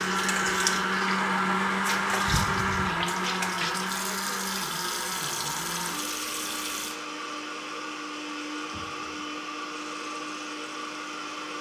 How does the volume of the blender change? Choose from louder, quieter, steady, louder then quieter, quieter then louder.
quieter.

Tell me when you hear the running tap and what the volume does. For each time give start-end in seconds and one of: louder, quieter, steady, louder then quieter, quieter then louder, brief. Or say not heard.
0.0-11.5 quieter.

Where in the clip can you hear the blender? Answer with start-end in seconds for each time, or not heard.
0.0-11.5.